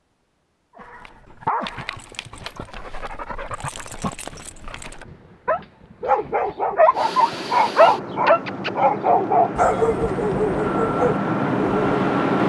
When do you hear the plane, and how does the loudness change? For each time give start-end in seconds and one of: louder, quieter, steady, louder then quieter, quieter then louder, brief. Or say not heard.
6.9-12.4 louder.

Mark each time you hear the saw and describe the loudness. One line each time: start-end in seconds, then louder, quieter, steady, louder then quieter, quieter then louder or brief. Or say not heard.
not heard.